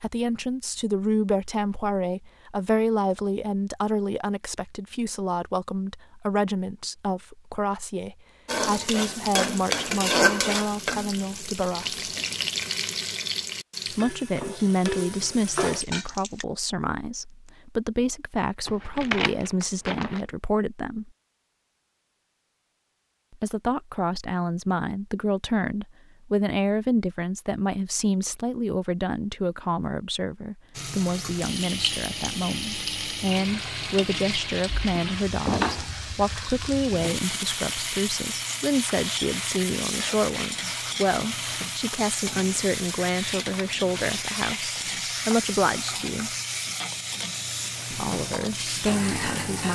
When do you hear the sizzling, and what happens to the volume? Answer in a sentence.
The sizzling can be heard from 8.4 to 16.4 s, getting quieter; and from 30.8 to 49.7 s, at a steady volume.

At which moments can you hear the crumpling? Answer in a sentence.
The crumpling can be heard from 18.6 to 20.2 s.